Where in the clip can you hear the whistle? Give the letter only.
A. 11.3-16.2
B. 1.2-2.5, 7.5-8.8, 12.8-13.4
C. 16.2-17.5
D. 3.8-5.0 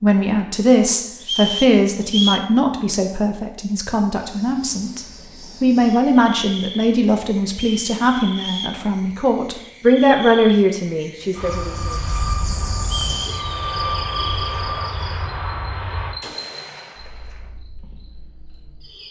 B.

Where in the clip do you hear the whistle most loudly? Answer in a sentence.
The volume of the whistle peaks at 2 seconds.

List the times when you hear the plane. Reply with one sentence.
The plane can be heard from 11.3 to 16.2 s.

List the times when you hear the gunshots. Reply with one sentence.
The gunshots can be heard from 16.2 to 17.5 s.